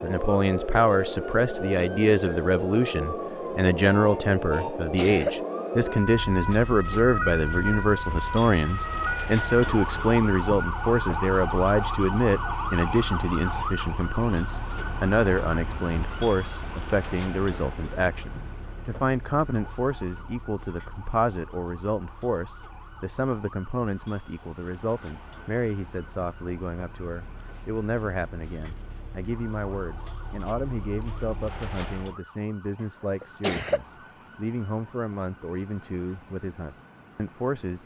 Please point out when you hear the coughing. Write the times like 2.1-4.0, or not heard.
4.8-5.3, 33.2-33.8.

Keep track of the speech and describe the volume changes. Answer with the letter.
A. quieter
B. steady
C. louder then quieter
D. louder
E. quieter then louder
A.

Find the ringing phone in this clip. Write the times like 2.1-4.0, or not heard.
not heard.